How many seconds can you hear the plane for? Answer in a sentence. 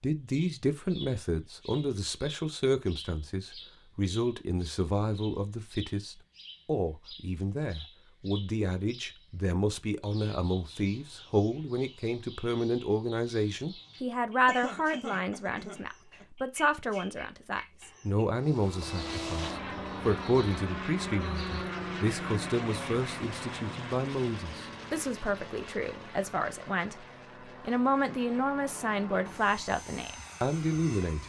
You can hear the plane for 13 seconds altogether.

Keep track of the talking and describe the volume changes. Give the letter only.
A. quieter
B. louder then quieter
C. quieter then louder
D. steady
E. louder
D.